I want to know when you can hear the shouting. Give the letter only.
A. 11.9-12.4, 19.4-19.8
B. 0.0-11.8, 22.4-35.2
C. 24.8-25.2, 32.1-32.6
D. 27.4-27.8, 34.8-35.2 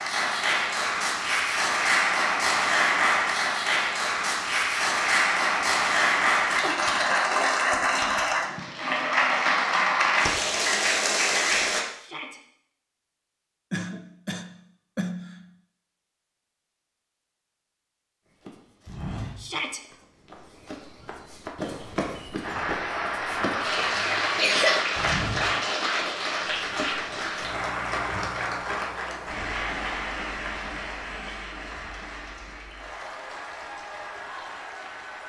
A.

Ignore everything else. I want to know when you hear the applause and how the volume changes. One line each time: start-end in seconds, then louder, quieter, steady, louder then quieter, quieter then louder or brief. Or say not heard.
0.0-11.8 steady
22.4-35.2 quieter.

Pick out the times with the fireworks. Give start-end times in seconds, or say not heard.
not heard.